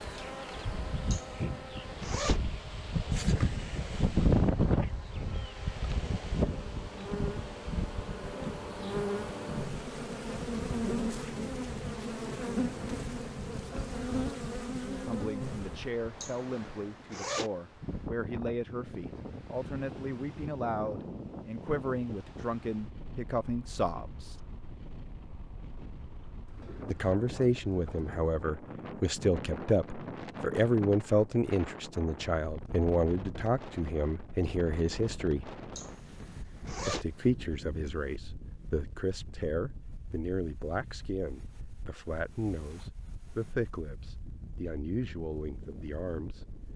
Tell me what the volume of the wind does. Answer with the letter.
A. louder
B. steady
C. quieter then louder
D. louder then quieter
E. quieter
E.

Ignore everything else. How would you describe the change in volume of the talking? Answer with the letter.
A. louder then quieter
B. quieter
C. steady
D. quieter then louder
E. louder
A.